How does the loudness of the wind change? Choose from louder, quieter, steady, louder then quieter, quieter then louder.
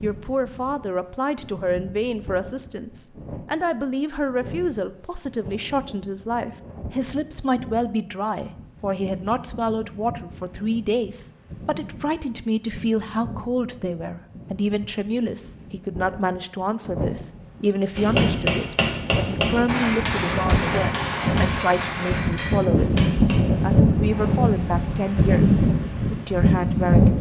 louder.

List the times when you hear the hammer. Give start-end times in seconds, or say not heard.
17.9-23.6.